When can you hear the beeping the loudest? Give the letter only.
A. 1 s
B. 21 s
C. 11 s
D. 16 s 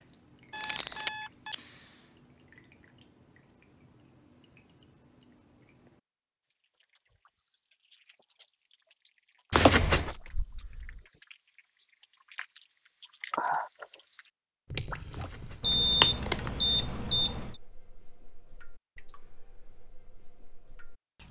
D.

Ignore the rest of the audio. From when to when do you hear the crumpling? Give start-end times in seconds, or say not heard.
0.6-1.1, 9.5-10.2, 16.0-16.5.